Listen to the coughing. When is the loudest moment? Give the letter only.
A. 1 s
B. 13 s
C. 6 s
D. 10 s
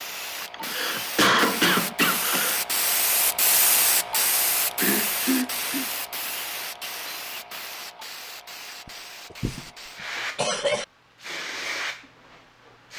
A.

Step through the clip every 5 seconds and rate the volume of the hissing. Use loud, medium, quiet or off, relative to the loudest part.
loud, medium, medium.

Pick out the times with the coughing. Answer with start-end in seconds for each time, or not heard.
0.4-2.6, 4.8-5.8, 8.8-9.7, 10.3-10.8.